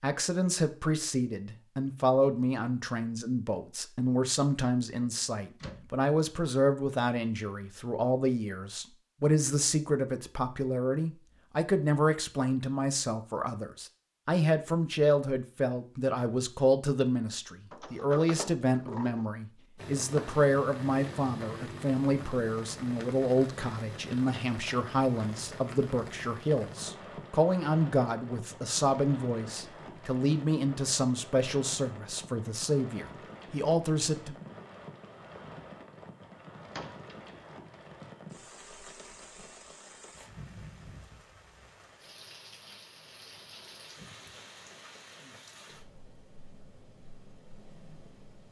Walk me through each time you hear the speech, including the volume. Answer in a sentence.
The speech can be heard from 0.0 to 34.4 s, at a steady volume.